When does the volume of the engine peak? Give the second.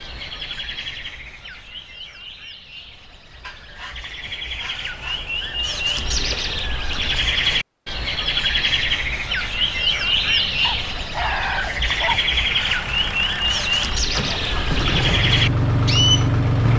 16 s.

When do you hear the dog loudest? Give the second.
11 s.